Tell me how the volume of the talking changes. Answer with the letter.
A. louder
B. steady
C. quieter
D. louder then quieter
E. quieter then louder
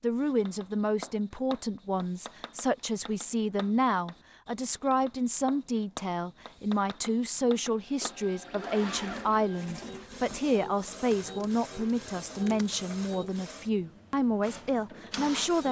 B.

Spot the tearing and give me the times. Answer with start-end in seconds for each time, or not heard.
not heard.